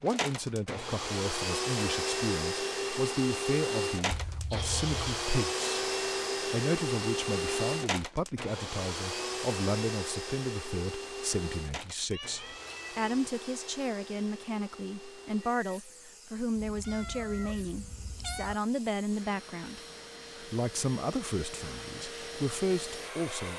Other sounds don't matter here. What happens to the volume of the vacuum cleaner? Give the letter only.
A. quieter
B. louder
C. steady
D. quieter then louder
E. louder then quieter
D.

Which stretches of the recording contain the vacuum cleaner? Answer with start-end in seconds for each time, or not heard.
0.0-23.5.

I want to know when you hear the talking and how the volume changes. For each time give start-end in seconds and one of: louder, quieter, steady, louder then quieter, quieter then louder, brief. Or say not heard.
0.0-23.5 steady.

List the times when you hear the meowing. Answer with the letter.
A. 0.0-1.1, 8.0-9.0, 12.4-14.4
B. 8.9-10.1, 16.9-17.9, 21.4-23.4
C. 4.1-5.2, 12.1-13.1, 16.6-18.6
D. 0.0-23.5
C.